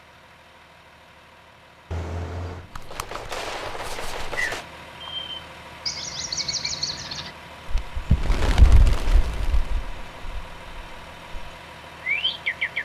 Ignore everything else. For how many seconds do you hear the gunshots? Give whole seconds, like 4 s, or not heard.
3 s.